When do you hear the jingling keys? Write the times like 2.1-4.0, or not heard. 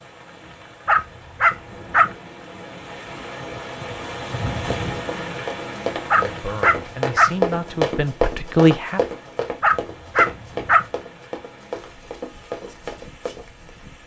not heard.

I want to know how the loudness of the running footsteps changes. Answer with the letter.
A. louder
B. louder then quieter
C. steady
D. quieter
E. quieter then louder
B.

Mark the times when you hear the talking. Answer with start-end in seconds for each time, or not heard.
6.2-9.0.